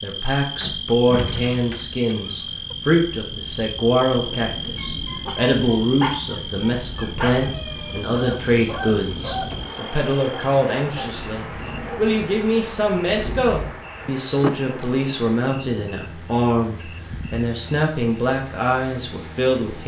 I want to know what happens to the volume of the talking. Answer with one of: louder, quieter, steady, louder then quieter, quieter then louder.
steady.